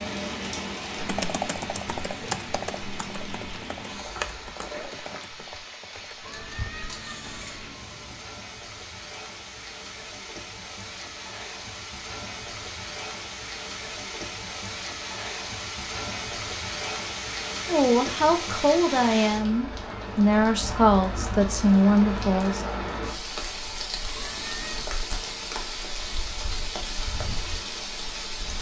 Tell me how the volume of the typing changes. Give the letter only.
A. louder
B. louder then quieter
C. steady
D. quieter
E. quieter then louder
D.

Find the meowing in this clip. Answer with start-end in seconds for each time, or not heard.
6.2-8.2, 24.1-24.9.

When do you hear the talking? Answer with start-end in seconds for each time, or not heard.
17.6-22.6.